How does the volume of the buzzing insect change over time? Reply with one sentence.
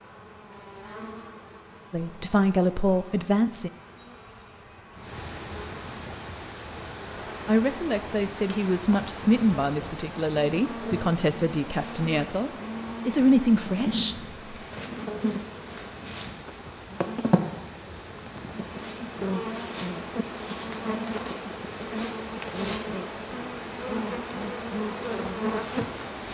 The loudness of the buzzing insect goes up.